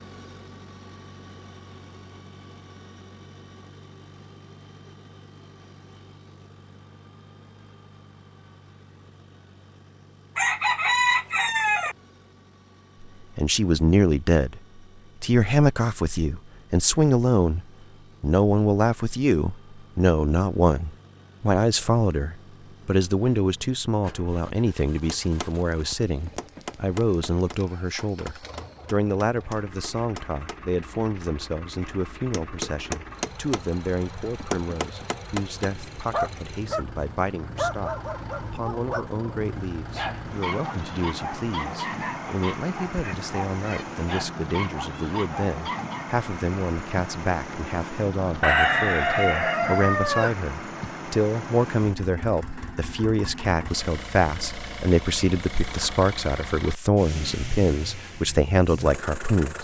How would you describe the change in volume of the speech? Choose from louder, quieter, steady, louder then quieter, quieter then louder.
quieter then louder.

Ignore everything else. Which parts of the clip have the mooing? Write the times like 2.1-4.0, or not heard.
not heard.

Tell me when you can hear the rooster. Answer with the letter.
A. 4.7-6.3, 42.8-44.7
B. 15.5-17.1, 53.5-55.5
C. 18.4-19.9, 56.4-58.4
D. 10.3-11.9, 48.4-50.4
D.